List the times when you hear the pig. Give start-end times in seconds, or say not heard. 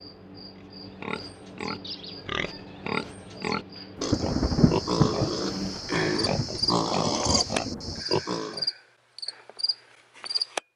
0.6-8.7.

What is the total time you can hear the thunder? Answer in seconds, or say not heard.
4 s.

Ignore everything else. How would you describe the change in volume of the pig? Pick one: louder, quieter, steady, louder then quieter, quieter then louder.
louder.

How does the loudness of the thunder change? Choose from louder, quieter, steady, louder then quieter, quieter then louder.
quieter.